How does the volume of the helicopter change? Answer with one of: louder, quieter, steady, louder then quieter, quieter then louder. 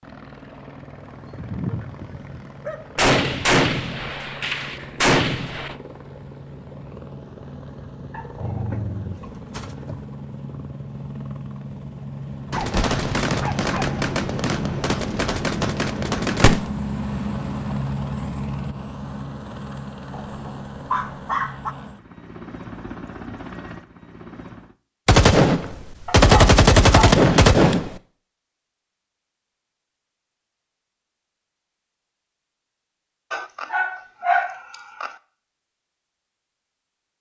louder then quieter.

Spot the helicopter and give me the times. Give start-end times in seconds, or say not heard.
0.0-24.8.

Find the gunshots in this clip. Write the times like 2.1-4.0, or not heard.
3.0-5.8, 12.5-16.6, 25.1-27.9.